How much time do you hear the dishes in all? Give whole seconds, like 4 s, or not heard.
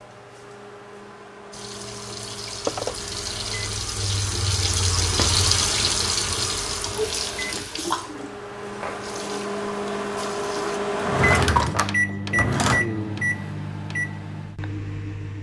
not heard.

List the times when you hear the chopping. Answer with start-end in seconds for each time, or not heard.
not heard.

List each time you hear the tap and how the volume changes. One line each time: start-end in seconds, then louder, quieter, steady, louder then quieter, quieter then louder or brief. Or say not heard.
1.5-10.8 louder then quieter.